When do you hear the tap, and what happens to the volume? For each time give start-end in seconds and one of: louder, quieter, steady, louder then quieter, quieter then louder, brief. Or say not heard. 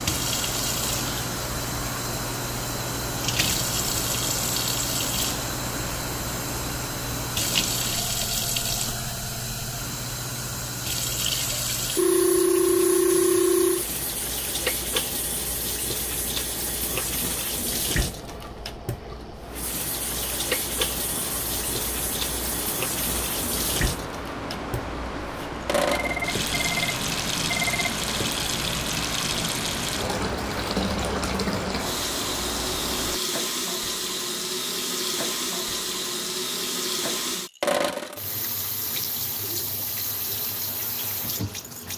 0.0-41.9 steady.